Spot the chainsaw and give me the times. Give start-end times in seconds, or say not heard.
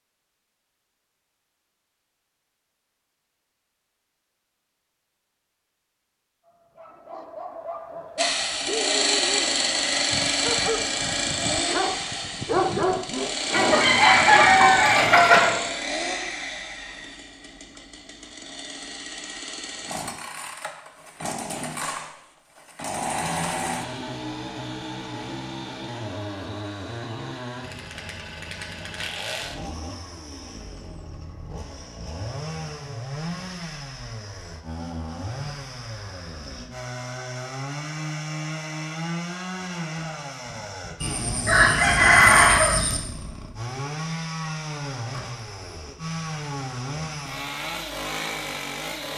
8.2-49.1.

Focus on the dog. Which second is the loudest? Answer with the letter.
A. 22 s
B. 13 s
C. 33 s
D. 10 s
B.